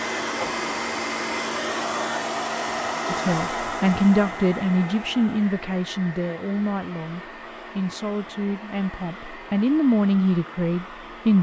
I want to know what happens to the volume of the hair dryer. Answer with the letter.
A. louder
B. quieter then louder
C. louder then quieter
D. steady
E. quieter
E.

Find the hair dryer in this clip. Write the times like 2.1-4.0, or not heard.
0.0-11.3.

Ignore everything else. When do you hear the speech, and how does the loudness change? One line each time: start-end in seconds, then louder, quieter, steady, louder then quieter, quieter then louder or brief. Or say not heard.
3.1-11.3 quieter then louder.